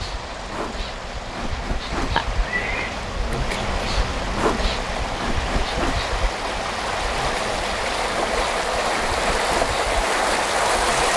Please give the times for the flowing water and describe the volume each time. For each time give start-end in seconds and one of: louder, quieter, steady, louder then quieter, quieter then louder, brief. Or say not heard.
0.0-11.1 louder.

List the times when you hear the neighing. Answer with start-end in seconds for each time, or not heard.
2.1-3.0.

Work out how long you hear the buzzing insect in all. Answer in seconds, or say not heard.
11 s.